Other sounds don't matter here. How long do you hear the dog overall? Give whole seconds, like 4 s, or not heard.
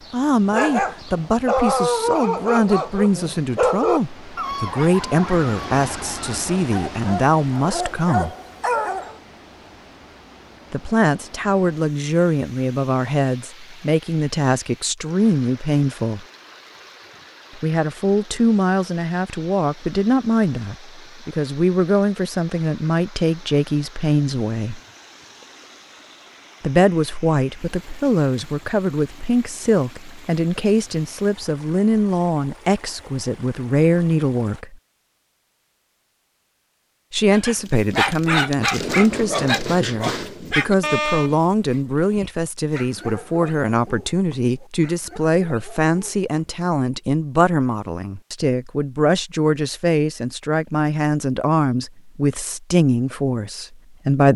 18 s.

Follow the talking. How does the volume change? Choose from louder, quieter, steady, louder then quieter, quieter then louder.
steady.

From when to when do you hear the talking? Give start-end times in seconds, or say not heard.
0.1-8.3, 10.7-16.2, 17.6-24.8, 26.6-34.8, 37.1-54.3.